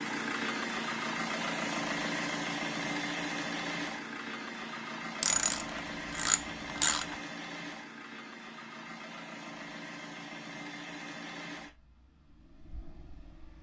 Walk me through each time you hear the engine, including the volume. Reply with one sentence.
You can hear the engine from 0.0 to 13.5 s, getting quieter.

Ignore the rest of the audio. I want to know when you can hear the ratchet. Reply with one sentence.
The ratchet can be heard from 5.2 to 7.2 s.